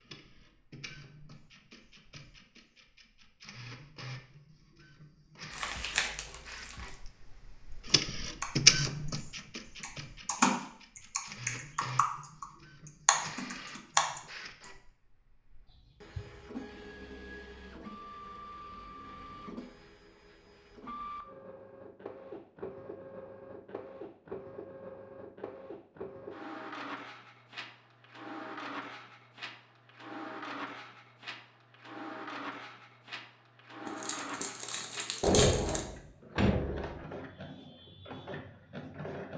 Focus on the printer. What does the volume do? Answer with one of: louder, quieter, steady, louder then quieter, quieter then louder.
louder then quieter.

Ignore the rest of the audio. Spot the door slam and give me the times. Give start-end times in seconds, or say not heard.
35.2-37.0.